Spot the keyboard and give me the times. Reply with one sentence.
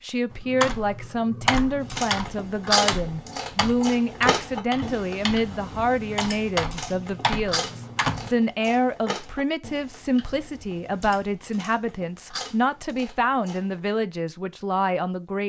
The keyboard can be heard from 0.3 to 8.3 s.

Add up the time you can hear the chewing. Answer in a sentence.
You can hear the chewing for 12 seconds altogether.